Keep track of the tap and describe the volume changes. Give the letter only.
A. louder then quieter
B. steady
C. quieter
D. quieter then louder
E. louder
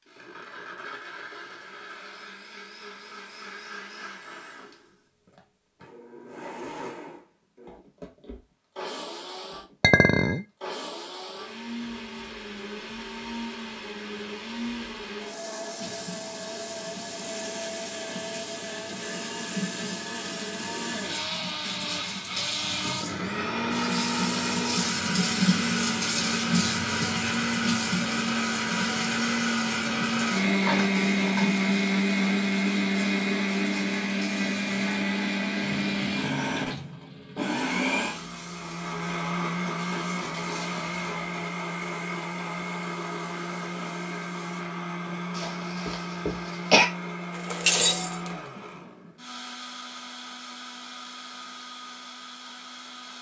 A.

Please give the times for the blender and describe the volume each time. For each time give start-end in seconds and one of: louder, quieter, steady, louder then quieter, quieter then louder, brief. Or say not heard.
0.0-53.1 louder then quieter.